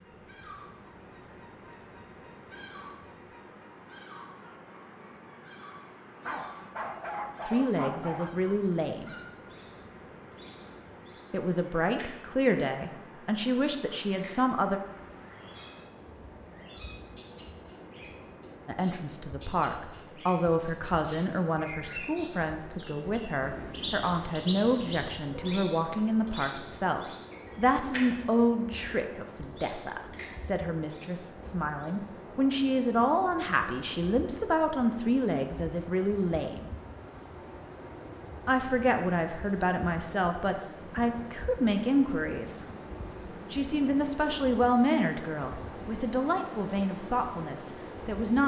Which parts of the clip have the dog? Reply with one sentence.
The dog can be heard from 6.2 to 8.3 s.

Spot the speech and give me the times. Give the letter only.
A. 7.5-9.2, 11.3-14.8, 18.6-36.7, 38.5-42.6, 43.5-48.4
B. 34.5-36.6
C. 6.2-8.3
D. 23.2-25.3
A.